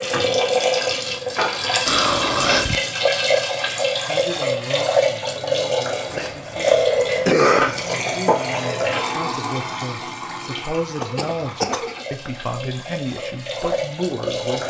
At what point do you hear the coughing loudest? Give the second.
7 s.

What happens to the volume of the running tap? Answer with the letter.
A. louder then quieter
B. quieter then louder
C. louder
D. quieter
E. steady
D.